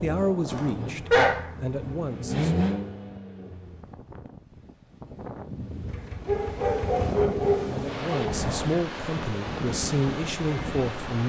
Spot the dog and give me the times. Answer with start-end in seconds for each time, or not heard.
0.5-1.8, 6.2-8.4.